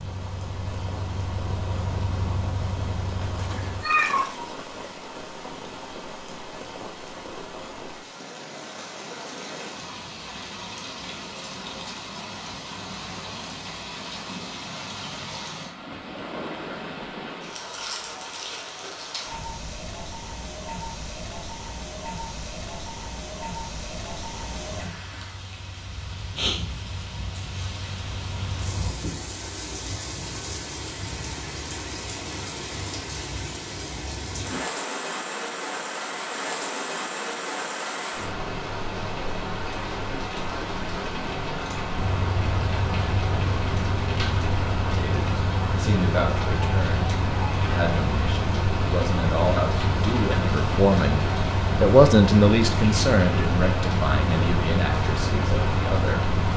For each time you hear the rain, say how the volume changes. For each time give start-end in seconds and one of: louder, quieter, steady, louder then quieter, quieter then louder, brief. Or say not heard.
0.0-56.5 louder.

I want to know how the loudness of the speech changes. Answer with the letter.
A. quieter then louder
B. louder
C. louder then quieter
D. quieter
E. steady
C.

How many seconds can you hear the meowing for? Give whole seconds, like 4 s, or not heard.
2 s.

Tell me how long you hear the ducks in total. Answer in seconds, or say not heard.
not heard.